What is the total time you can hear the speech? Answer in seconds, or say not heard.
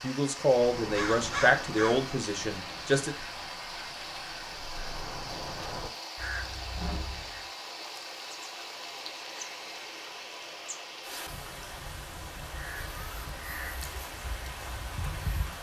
3 s.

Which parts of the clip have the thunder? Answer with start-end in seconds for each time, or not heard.
not heard.